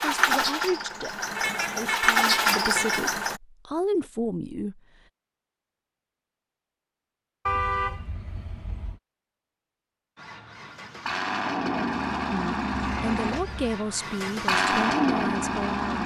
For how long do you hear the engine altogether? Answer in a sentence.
The engine can be heard for 9 seconds in total.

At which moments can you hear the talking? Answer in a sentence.
You can hear the talking from 0.0 to 4.8 s and from 12.3 to 16.0 s.